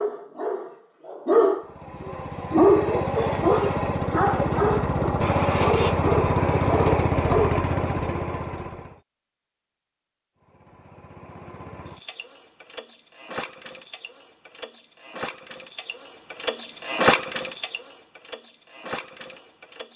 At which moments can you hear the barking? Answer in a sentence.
The barking can be heard from 0.0 to 7.6 s.